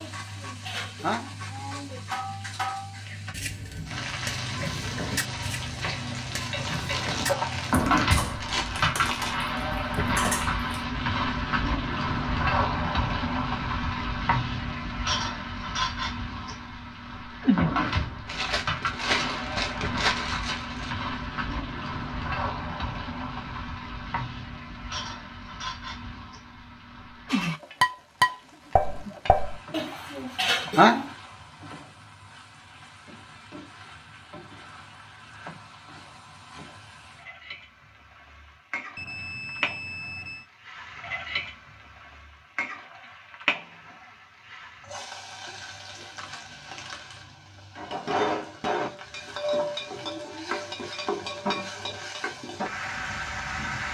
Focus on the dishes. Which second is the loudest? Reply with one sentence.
The loudest moment of the dishes is at 31 seconds.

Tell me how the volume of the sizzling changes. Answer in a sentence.
The volume of the sizzling goes down, then up.